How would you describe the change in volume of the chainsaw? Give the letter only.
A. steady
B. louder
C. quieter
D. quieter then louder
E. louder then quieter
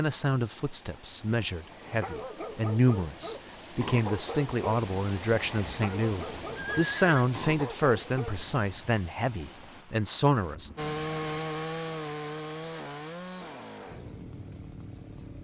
C.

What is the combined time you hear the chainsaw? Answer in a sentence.
The chainsaw can be heard for 5 seconds in total.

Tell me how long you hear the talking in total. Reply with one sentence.
The talking can be heard for 11 seconds in total.